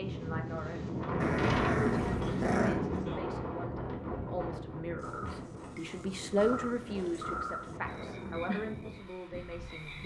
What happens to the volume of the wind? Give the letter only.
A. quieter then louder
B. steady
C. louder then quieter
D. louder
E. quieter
E.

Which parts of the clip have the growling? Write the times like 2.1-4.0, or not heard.
1.2-2.8, 6.7-8.4.